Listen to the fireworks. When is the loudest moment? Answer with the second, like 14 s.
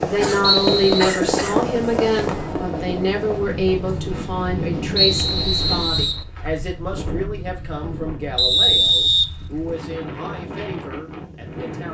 1 s.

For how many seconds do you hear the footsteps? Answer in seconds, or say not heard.
not heard.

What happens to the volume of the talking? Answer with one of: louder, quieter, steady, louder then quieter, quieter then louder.
quieter.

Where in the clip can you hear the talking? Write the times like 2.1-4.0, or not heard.
0.1-11.9.